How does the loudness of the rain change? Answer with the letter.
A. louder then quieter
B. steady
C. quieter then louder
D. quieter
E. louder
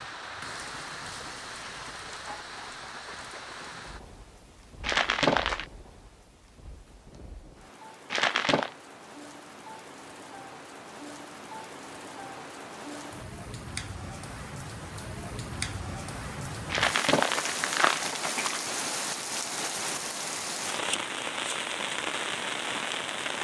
C.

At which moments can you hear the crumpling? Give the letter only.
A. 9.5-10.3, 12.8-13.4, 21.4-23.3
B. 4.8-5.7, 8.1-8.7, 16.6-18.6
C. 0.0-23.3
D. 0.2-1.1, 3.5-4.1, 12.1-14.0
B.